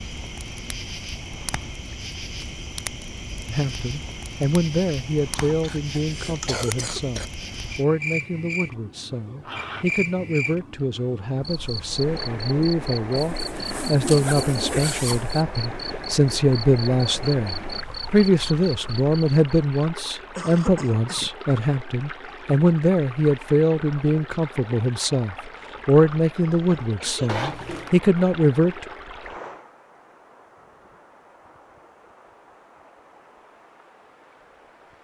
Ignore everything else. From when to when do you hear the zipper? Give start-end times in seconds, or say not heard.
9.4-10.0, 13.2-15.4, 27.2-27.9.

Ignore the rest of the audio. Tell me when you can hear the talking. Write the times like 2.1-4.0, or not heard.
3.5-28.9.